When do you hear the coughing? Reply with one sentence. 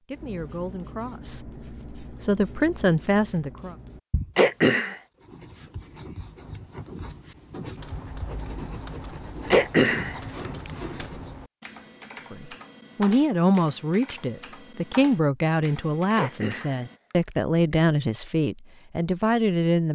You can hear the coughing from 4.3 to 5.0 s, from 9.5 to 10.7 s and from 16.1 to 17.8 s.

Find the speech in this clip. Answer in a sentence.
The speech can be heard from 0.1 to 3.8 s and from 12.3 to 19.9 s.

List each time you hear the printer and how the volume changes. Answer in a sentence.
The printer can't be heard in this clip.